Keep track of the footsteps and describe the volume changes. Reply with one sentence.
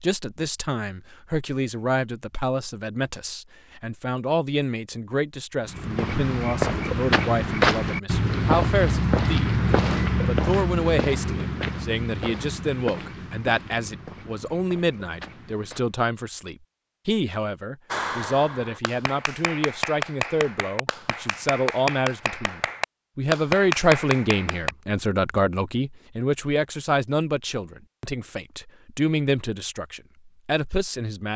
The volume of the footsteps goes down.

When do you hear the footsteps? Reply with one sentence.
You can hear the footsteps from 5.7 to 15.9 s.